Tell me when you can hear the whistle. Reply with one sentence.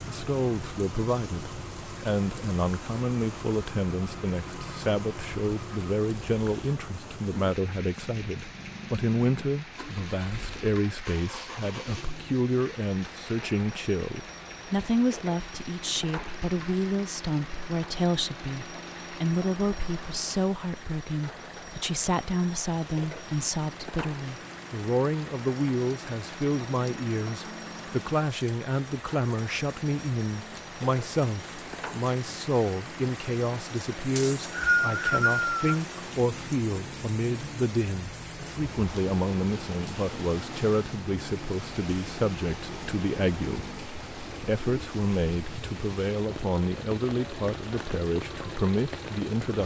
The whistle can be heard from 34.1 to 35.6 s.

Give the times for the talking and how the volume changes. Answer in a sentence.
You can hear the talking from 0.1 to 49.6 s, at a steady volume.